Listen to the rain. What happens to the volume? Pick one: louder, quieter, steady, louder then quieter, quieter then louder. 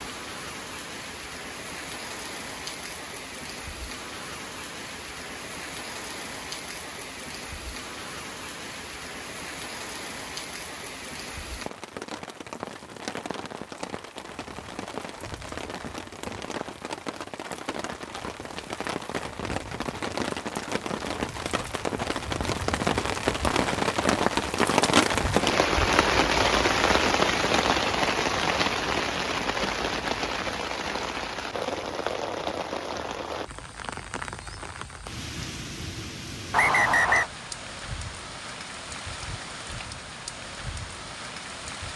louder then quieter.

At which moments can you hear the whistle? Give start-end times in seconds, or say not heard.
36.5-37.3.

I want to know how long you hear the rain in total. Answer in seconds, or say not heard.
42 s.